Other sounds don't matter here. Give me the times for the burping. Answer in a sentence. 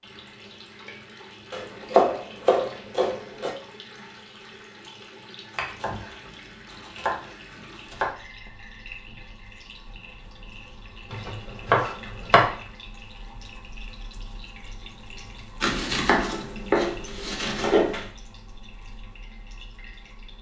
The burping can't be heard in this clip.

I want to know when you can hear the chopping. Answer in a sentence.
The chopping can be heard from 1.5 to 3.5 s, from 5.5 to 8.1 s, from 11.1 to 12.6 s and from 15.6 to 18.1 s.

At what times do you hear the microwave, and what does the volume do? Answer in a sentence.
You can't hear the microwave here.